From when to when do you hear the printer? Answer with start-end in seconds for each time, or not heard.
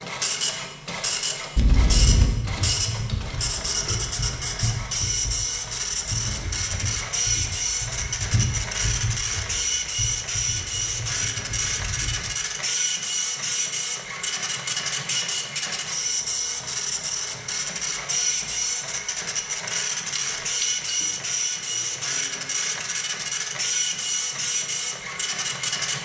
0.0-26.0.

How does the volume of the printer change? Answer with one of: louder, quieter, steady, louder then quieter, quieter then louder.
steady.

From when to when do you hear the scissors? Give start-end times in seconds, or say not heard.
1.6-2.3, 20.4-21.1.